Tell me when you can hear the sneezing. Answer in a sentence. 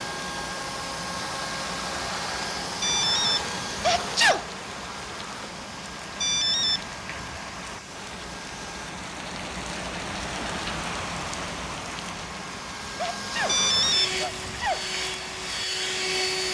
The sneezing can be heard from 3.6 to 4.5 s and from 12.8 to 14.8 s.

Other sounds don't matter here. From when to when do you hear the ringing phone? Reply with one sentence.
The ringing phone can be heard from 2.8 to 4.0 s, from 6.2 to 7.4 s and from 13.4 to 14.7 s.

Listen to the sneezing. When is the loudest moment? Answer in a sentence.
The loudest moment of the sneezing is at 4 seconds.